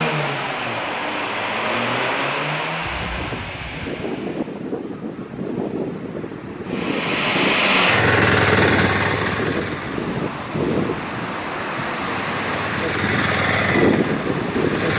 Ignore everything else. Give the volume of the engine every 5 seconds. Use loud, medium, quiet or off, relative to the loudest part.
medium, loud, medium.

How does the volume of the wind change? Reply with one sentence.
The loudness of the wind goes up.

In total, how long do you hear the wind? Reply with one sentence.
You can hear the wind for 12 seconds altogether.